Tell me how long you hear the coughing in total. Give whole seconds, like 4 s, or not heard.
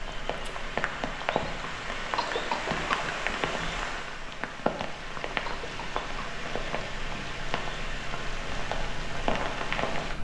2 s.